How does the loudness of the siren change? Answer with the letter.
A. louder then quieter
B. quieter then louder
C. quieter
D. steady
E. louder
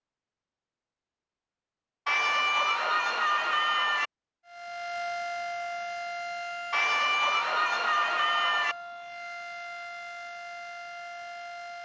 C.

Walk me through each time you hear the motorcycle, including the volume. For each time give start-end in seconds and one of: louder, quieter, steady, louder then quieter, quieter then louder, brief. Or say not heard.
not heard.